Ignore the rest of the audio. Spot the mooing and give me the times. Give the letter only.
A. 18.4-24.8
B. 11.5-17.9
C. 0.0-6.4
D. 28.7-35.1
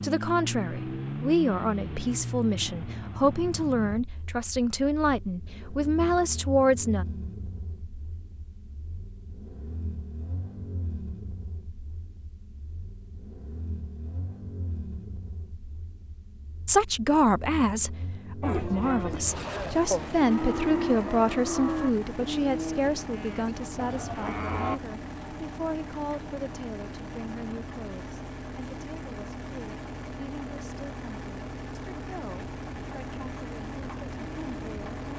A.